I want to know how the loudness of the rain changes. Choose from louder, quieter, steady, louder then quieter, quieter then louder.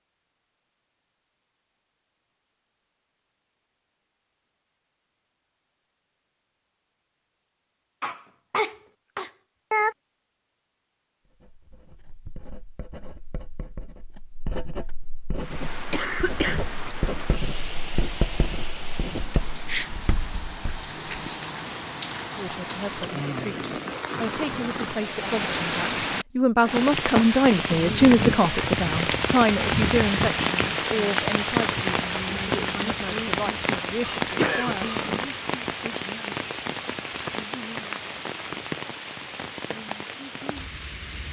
louder then quieter.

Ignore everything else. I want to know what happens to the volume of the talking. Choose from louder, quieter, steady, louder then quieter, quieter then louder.
louder then quieter.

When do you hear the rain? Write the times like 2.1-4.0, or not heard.
15.3-41.2.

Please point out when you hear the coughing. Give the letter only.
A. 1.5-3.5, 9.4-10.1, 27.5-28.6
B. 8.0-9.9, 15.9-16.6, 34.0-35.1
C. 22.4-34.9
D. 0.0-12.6
B.